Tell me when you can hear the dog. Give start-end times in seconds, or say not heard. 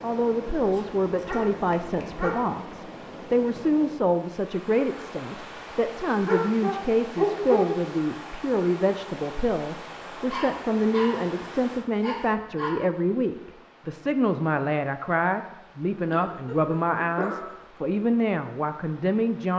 0.7-2.4, 6.2-7.8, 10.3-11.2, 12.0-12.8, 16.1-17.6.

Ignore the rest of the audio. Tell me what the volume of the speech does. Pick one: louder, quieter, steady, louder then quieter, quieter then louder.
steady.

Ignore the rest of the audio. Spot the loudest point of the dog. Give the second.
7 s.